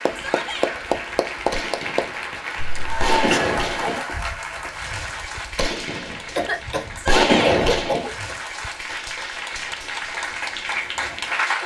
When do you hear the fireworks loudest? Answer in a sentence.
The volume of the fireworks peaks at 7 seconds.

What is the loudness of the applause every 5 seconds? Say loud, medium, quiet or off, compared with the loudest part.
loud, medium, loud.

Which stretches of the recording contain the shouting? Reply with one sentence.
You can hear the shouting from 0.1 to 0.7 s and from 7.0 to 7.5 s.